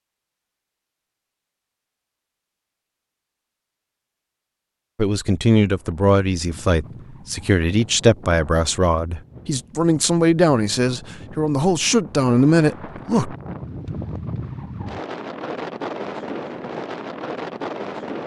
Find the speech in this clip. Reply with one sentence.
The speech can be heard from 5.0 to 13.3 s.